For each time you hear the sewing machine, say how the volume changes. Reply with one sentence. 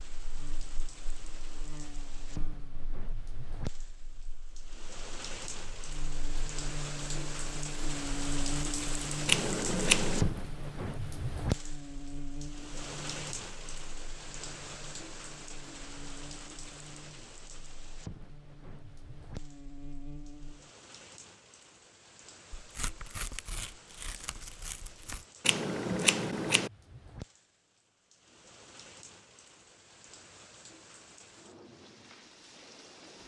You can't hear the sewing machine here.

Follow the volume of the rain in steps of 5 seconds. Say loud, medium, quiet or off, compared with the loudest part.
medium, loud, loud, medium, quiet, quiet, quiet.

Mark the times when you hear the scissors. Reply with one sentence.
The scissors can be heard from 9.2 to 10.3 s and from 25.4 to 26.7 s.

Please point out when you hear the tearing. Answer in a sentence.
You can hear the tearing from 22.6 to 25.2 s.